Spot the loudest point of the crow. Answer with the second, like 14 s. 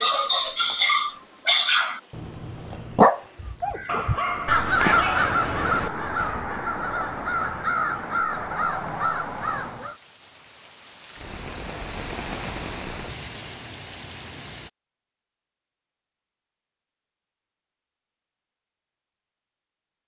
5 s.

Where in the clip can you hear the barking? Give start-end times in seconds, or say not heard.
0.0-6.5.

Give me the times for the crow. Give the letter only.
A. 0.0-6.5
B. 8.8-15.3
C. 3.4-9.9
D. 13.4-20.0
C.